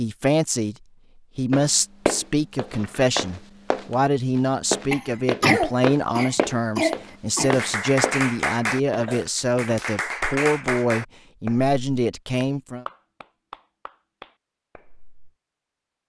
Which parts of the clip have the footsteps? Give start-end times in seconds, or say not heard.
1.5-8.3.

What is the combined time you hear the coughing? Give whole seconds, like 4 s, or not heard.
3 s.